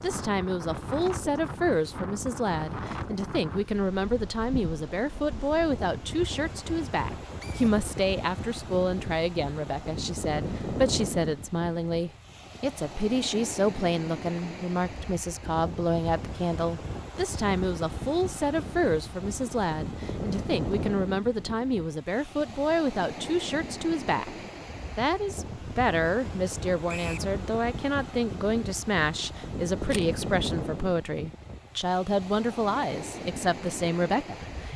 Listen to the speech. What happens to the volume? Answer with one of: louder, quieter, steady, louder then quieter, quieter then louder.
steady.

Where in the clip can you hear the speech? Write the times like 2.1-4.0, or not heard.
0.0-34.7.